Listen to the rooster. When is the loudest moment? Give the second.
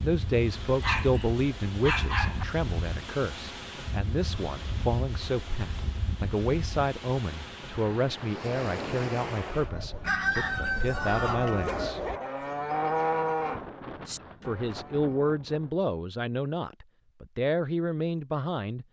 10 s.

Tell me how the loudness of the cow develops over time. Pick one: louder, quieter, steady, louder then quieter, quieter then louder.
louder then quieter.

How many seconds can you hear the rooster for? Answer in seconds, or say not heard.
2 s.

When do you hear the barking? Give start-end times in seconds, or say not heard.
0.8-2.5, 11.4-12.4.